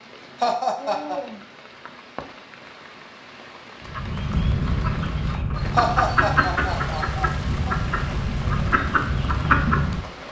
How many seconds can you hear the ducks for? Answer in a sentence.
You can hear the ducks for 6 seconds altogether.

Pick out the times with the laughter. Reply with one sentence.
The laughter can be heard from 0.4 to 1.2 s and from 5.8 to 7.8 s.